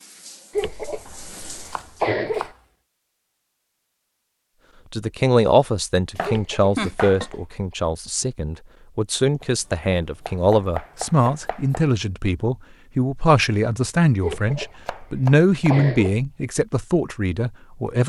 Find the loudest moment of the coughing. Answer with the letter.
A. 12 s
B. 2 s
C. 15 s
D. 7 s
B.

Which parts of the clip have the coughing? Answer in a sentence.
You can hear the coughing from 0.5 to 2.5 s, from 6.2 to 7.8 s and from 14.2 to 16.2 s.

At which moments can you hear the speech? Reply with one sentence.
You can hear the speech from 4.9 to 18.0 s.